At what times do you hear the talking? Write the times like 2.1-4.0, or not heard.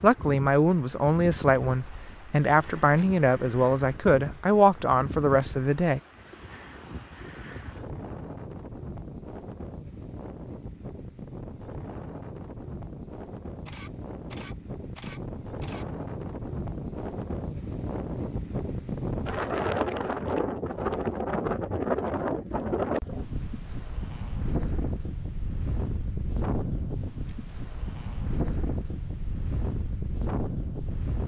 0.0-6.0.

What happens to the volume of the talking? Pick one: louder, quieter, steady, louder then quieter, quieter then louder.
steady.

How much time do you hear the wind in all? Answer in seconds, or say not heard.
31 s.